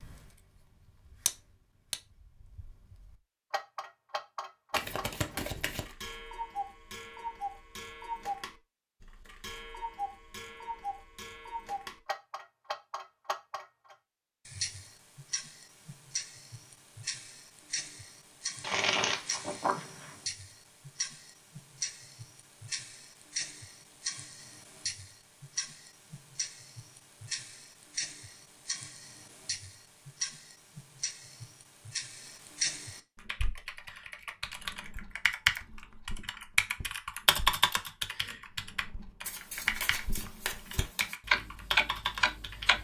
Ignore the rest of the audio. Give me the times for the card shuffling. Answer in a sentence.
You can hear the card shuffling from 4.7 to 5.9 s, from 18.6 to 20.1 s and from 39.2 to 41.1 s.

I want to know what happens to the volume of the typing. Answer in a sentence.
The loudness of the typing goes up, then down.